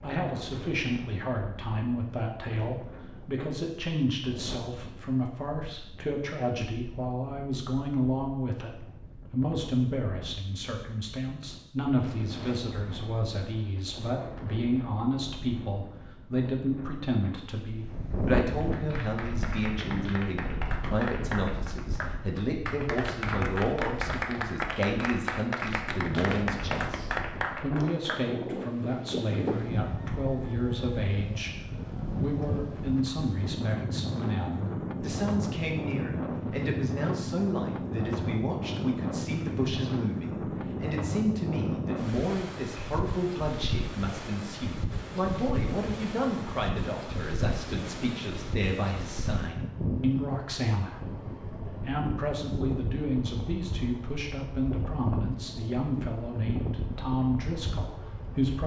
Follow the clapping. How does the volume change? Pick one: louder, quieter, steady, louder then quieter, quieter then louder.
louder.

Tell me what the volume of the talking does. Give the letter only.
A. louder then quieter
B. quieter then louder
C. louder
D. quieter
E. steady
E.